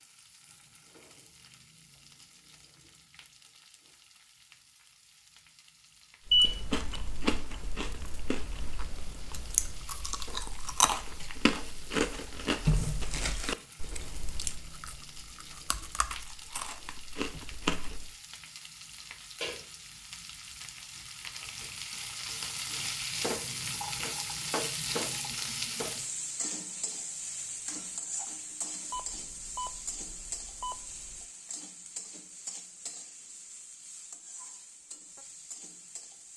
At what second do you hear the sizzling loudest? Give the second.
25 s.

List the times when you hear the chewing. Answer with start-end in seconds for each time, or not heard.
6.2-18.1.